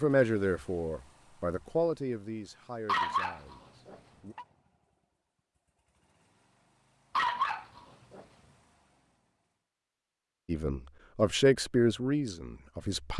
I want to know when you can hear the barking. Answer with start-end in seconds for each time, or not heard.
2.9-4.5, 7.2-8.2.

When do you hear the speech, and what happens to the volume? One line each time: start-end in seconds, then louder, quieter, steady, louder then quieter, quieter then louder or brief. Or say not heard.
0.0-4.3 quieter
10.4-13.1 brief.